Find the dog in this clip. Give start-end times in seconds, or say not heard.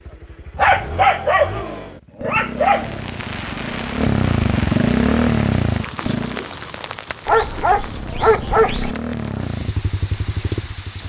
0.6-3.0, 7.2-8.9.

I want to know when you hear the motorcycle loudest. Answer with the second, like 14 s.
5 s.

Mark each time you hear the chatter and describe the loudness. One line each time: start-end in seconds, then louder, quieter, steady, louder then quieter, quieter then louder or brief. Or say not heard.
not heard.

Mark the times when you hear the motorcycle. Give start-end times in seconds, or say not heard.
0.0-6.5, 7.7-11.0.